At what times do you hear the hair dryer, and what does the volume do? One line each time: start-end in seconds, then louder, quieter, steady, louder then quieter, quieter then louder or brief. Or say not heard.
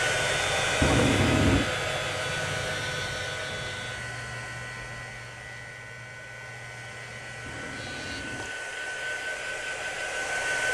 0.0-10.6 quieter then louder.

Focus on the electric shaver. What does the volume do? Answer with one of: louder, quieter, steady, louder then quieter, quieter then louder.
quieter.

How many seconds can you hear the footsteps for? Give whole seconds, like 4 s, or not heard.
not heard.